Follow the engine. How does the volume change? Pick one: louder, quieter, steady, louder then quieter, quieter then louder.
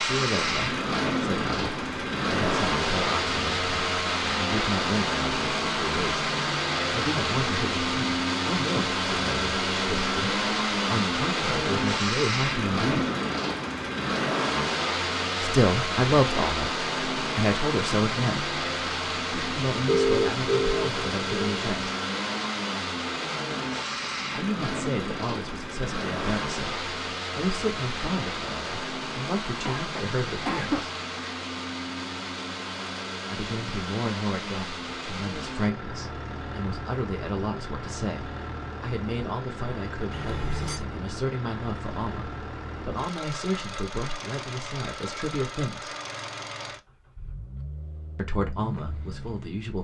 quieter.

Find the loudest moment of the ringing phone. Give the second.
20 s.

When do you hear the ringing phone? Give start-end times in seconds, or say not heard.
19.9-21.4, 40.1-40.8.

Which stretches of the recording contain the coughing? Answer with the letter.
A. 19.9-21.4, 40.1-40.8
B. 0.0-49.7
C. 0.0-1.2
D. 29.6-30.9
D.